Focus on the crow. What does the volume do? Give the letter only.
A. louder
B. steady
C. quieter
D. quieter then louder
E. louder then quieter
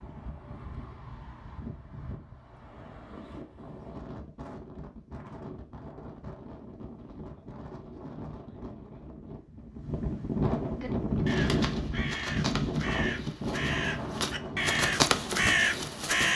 A.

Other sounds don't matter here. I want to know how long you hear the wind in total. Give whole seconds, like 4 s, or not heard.
16 s.